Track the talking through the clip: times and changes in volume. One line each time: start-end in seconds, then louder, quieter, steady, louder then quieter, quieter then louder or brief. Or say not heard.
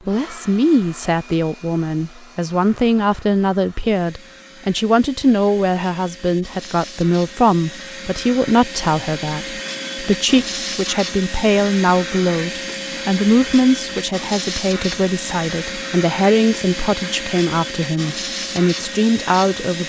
0.1-19.8 steady.